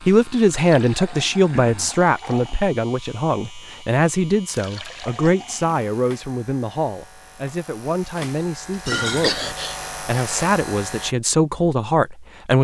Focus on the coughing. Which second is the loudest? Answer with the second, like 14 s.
9 s.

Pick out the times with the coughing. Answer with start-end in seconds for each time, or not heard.
1.5-1.9, 4.5-5.1, 8.9-9.8.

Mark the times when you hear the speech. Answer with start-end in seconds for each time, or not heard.
0.1-12.5.